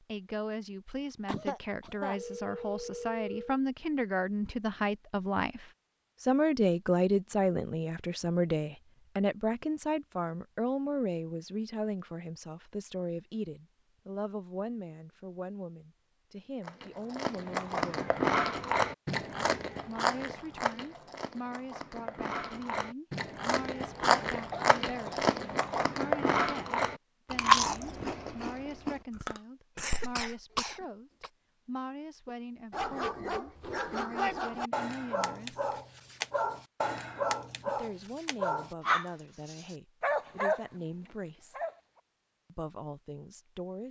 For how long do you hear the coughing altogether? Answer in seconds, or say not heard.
4 s.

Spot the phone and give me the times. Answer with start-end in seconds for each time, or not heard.
2.1-3.6.